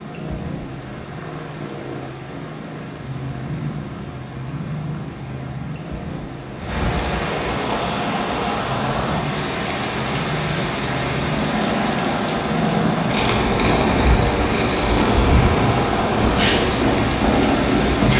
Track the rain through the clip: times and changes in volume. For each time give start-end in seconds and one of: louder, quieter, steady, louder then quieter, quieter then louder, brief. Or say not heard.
0.0-18.1 louder.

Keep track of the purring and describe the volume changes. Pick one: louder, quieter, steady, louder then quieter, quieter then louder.
louder.